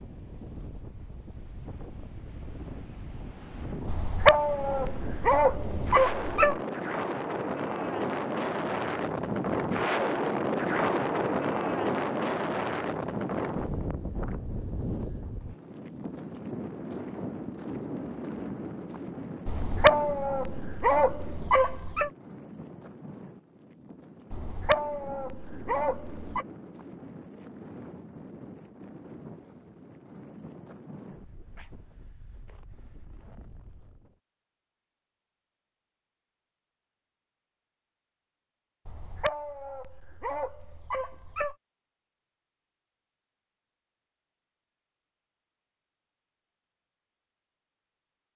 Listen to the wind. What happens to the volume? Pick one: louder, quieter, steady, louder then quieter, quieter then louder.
louder then quieter.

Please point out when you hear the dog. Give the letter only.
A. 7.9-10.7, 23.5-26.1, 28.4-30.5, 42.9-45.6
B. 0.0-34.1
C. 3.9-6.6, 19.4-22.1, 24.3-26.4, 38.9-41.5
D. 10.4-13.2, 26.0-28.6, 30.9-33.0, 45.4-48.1
C.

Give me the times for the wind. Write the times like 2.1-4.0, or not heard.
0.0-34.1.